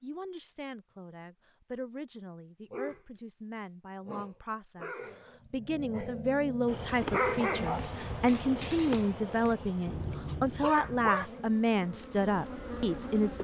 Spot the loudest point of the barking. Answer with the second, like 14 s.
7 s.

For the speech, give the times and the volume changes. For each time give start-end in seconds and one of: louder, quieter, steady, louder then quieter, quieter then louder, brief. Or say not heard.
0.0-13.3 louder.